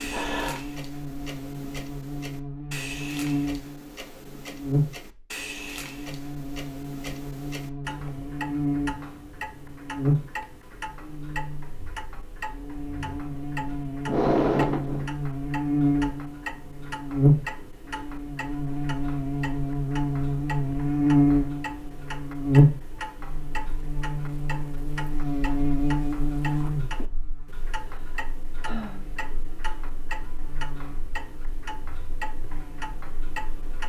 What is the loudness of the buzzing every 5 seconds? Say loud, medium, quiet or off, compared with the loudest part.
medium, medium, medium, loud, loud, medium, quiet.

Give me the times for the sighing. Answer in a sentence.
You can hear the sighing from 0.0 to 0.6 s, from 14.1 to 15.1 s and from 27.8 to 29.0 s.